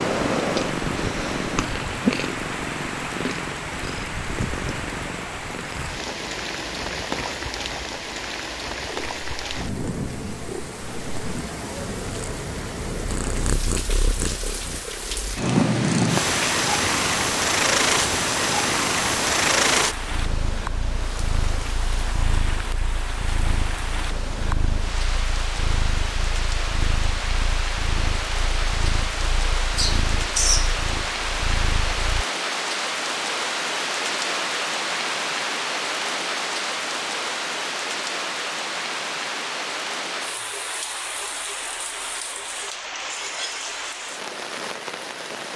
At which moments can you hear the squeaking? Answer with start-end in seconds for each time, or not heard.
29.8-30.8.